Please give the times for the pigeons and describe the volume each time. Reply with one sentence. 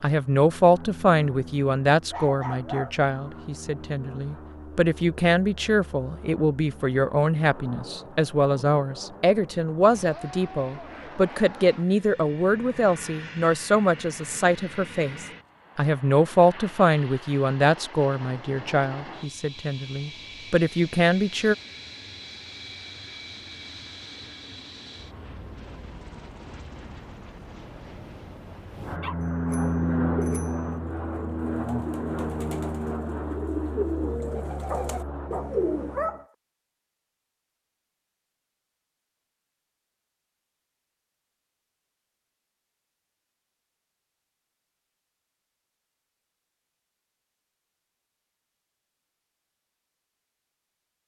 You can hear the pigeons from 30.0 to 36.0 s, getting louder.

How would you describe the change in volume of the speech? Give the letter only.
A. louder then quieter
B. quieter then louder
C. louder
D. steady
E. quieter
D.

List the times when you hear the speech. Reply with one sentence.
The speech can be heard from 0.0 to 21.6 s.